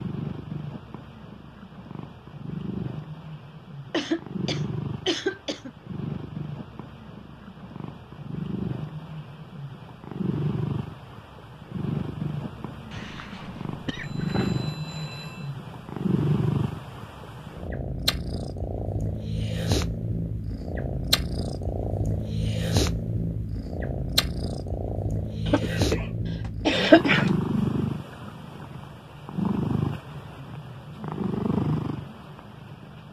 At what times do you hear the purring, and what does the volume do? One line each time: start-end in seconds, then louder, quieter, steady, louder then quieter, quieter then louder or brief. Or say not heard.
0.0-33.0 louder.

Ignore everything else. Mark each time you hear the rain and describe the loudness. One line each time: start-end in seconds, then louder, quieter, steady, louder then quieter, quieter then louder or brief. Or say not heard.
not heard.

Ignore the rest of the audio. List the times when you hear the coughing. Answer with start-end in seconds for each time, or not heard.
3.9-5.7, 12.9-14.5, 25.4-26.1, 26.6-27.3.